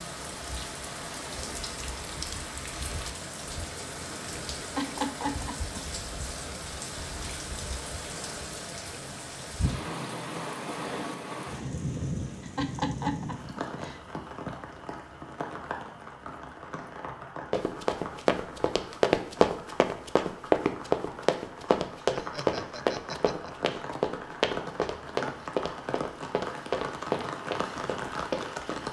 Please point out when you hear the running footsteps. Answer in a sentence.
You can hear the running footsteps from 17.5 to 28.8 s.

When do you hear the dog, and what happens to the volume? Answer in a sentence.
You can't hear the dog here.